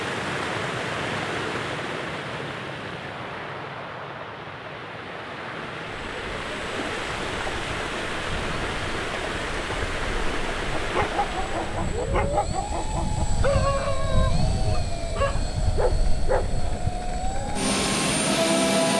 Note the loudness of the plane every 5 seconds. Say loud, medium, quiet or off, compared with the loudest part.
medium, quiet, medium, loud.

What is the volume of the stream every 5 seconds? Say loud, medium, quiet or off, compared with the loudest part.
loud, loud, loud, off.